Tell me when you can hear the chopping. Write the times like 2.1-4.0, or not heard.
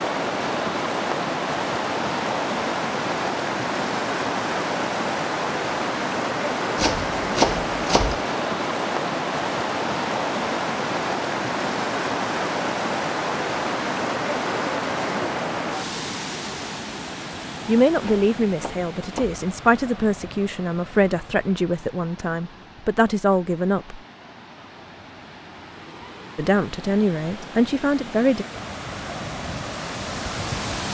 6.8-8.2, 18.0-19.4.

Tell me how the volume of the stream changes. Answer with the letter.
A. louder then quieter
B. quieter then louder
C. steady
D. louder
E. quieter
B.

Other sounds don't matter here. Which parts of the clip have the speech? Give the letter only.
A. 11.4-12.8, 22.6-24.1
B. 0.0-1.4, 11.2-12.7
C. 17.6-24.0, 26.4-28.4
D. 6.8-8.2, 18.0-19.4
C.